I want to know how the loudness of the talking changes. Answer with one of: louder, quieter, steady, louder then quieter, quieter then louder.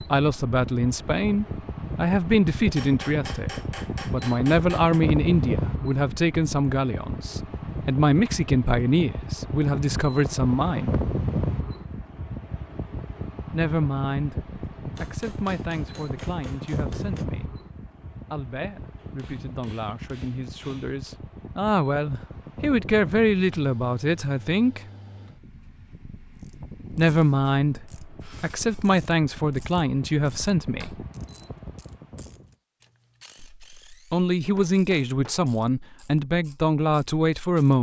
quieter then louder.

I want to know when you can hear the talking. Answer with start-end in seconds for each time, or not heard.
0.0-10.9, 13.5-17.6, 18.3-24.8, 26.9-31.1, 33.4-37.7.